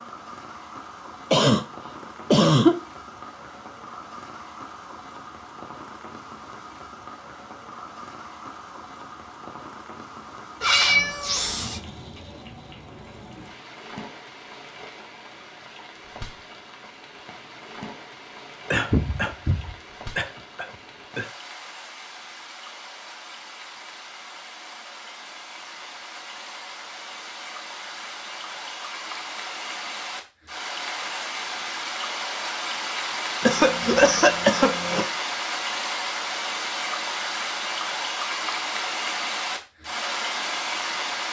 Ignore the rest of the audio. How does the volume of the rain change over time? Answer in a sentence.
The loudness of the rain goes up.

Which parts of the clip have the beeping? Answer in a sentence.
You can't hear the beeping here.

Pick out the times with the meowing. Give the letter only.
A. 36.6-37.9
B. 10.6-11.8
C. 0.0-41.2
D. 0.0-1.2
B.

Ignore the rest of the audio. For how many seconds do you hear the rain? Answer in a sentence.
You can hear the rain for 41 seconds altogether.